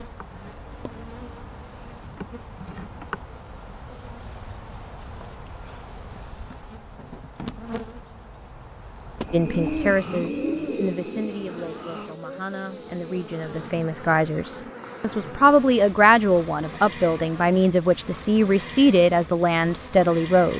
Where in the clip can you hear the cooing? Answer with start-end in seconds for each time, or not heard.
9.3-11.8.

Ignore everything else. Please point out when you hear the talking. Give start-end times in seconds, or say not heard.
9.3-20.5.